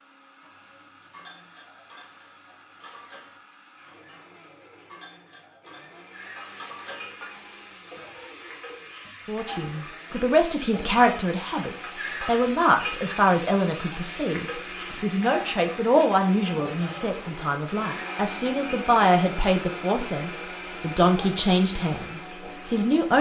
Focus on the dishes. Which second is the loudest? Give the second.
7 s.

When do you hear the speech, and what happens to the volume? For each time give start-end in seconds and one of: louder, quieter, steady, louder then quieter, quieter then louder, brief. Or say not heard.
9.2-23.1 steady.